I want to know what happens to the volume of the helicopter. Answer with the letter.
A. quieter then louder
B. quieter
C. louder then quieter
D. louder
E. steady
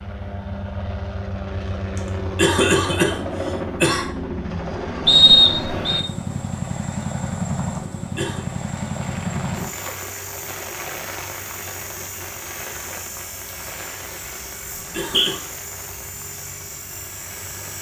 B.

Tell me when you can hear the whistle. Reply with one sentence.
The whistle can be heard from 5.0 to 6.0 s and from 14.8 to 15.3 s.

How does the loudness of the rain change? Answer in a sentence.
The loudness of the rain goes down.